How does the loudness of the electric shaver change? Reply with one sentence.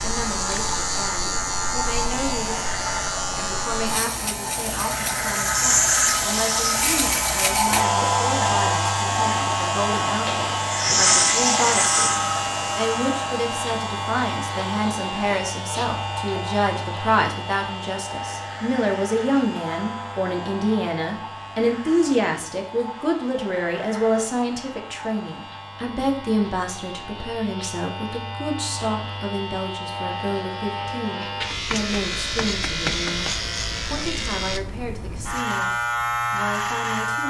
The volume of the electric shaver goes down, then up.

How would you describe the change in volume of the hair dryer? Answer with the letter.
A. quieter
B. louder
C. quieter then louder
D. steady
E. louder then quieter
A.